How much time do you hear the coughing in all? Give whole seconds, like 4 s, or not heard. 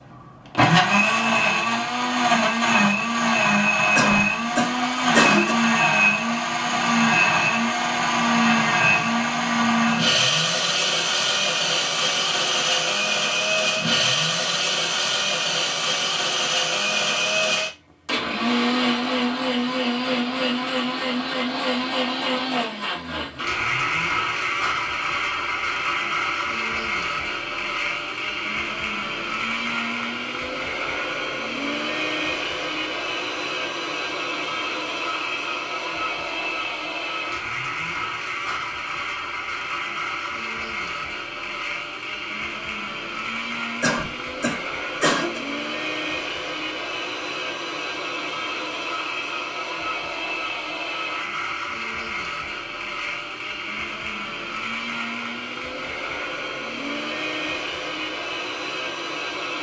3 s.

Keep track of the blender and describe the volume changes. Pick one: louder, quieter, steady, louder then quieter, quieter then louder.
quieter.